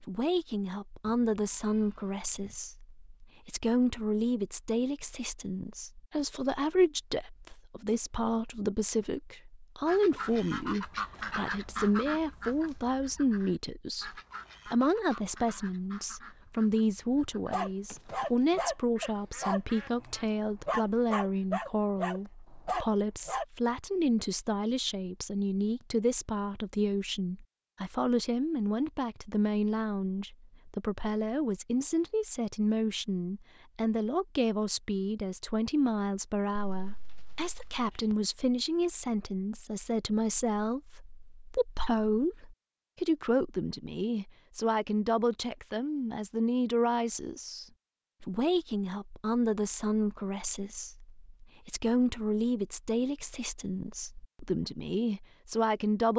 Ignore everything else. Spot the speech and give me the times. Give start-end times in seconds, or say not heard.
0.0-56.1.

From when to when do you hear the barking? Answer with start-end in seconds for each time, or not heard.
17.5-23.4.